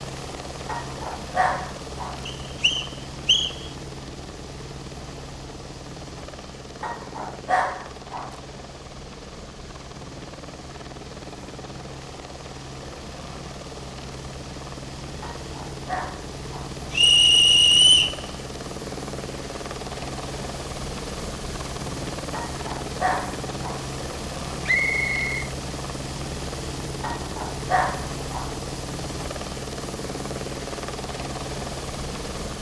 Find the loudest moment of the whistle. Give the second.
18 s.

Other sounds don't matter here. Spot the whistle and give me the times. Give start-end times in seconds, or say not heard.
2.2-3.5, 16.9-18.1, 24.6-25.4.